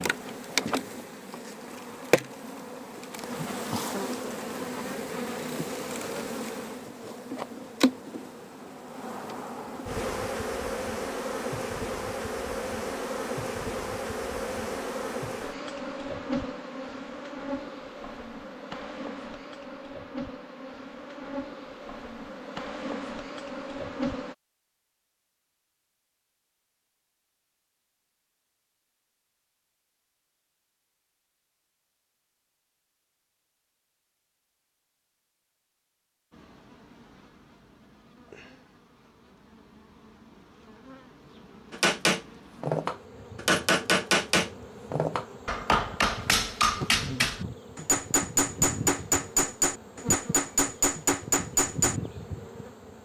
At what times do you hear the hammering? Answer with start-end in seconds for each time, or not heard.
41.7-52.0.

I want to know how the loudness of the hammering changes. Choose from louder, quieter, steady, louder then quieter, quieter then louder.
steady.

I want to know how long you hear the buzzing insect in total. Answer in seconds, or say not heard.
41 s.